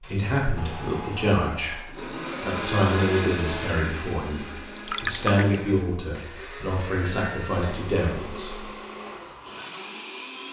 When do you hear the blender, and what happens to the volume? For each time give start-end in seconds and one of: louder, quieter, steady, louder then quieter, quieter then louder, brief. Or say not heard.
0.0-10.4 louder then quieter.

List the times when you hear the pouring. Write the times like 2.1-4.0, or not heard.
4.6-5.5.